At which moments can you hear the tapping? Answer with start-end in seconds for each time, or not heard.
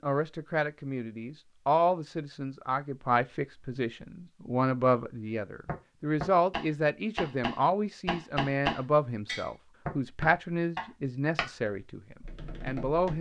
5.7-13.1.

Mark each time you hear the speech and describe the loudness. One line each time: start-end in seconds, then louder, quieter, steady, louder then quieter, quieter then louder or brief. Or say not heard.
0.0-13.1 steady.